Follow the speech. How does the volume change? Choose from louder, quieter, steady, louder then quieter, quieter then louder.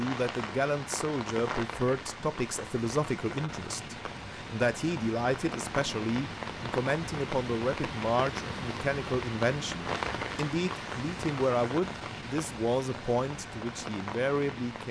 steady.